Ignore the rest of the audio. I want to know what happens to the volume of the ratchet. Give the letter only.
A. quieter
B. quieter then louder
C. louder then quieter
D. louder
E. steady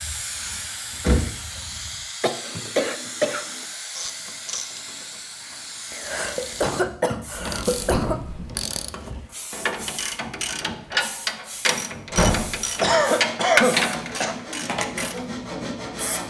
D.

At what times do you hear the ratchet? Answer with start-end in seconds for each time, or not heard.
4.0-15.2.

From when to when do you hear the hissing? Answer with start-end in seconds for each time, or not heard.
0.0-16.2.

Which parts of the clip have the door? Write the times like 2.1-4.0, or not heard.
0.0-1.9, 7.3-8.6, 12.1-12.6.